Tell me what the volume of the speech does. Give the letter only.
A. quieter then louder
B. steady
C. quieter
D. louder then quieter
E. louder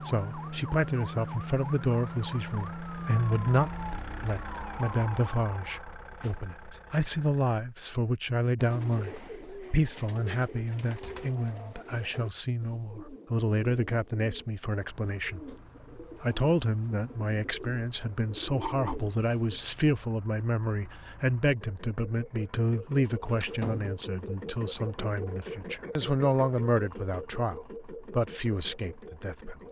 B.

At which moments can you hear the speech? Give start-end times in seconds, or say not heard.
0.0-29.6.